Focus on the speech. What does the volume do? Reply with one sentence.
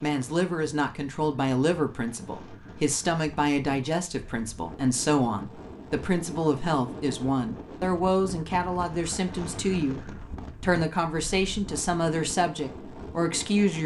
The loudness of the speech stays about the same.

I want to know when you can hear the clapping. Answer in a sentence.
You can't hear the clapping here.